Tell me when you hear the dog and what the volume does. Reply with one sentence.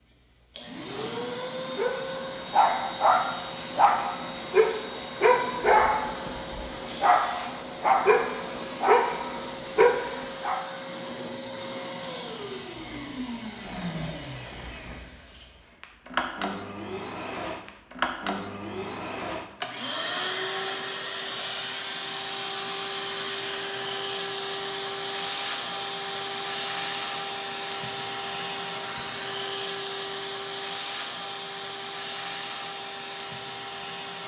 The dog can be heard from 1.8 to 10.6 s, at a steady volume.